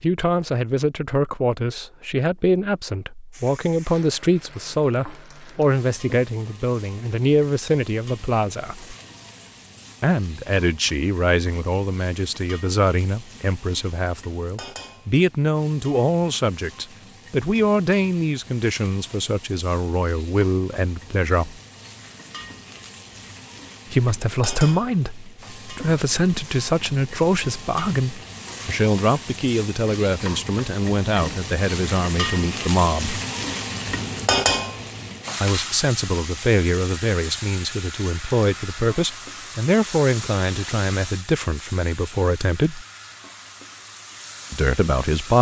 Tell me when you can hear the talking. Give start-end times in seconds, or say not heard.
0.0-8.9, 10.0-21.6, 23.9-33.2, 35.4-42.9, 44.5-45.3.